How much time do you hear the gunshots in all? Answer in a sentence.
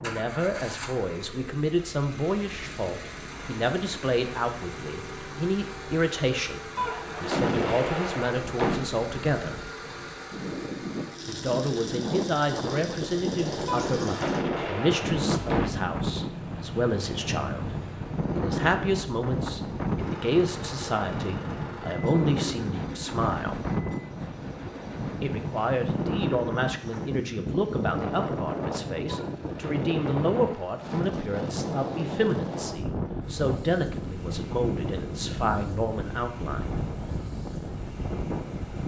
You can hear the gunshots for 6 seconds altogether.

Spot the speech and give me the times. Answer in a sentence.
You can hear the speech from 0.0 to 9.6 s, from 11.2 to 17.7 s, from 18.4 to 23.6 s and from 25.2 to 36.7 s.